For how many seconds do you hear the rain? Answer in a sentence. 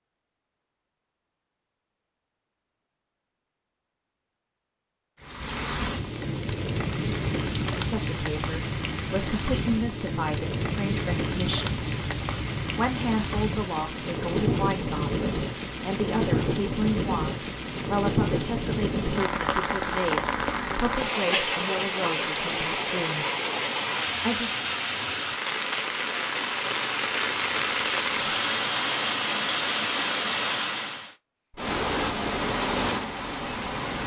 The rain can be heard for 29 seconds in total.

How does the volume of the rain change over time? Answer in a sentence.
The volume of the rain stays about the same.